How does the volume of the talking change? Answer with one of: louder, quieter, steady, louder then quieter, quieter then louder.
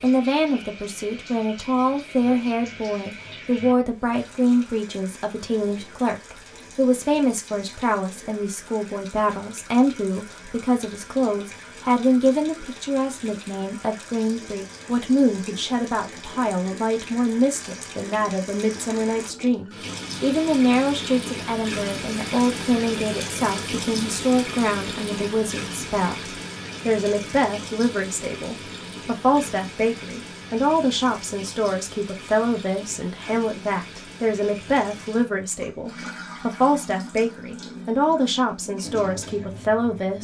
steady.